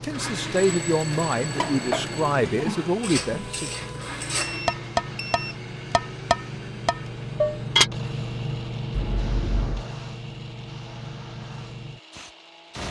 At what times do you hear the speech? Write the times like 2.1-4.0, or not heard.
0.0-3.7.